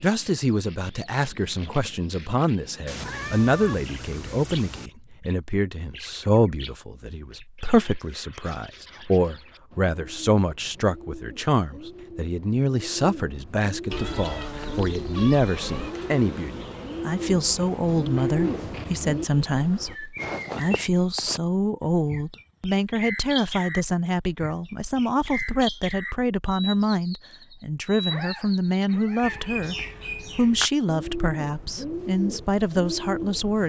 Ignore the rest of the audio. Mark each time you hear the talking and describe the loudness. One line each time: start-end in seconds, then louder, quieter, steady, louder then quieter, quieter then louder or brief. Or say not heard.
0.0-33.6 steady.